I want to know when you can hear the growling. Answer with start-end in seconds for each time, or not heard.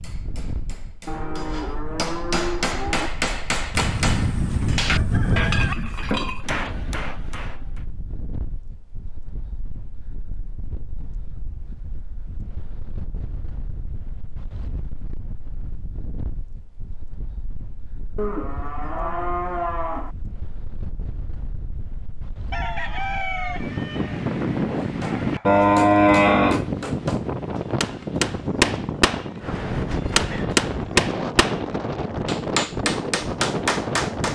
not heard.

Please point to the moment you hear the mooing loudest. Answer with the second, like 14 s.
26 s.